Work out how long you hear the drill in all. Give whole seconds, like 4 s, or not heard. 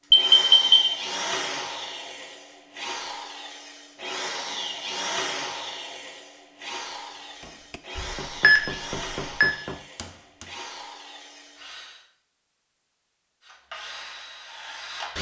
14 s.